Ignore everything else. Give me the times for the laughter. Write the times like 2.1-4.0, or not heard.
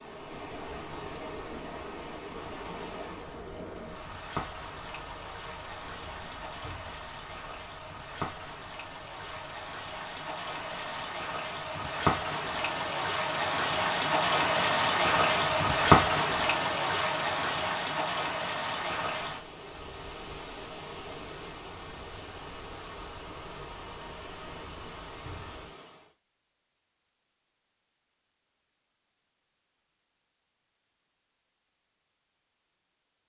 not heard.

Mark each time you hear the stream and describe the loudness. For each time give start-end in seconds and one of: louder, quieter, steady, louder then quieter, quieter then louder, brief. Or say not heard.
0.0-26.1 louder then quieter.